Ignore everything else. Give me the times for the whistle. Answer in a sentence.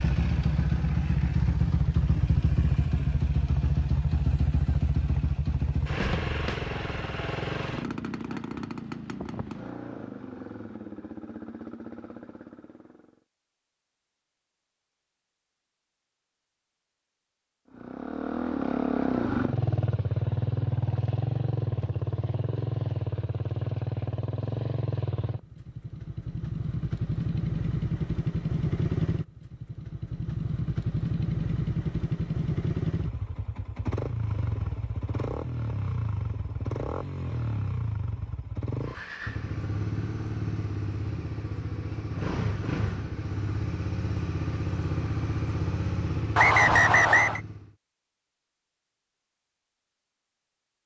You can hear the whistle from 46.4 to 47.4 s.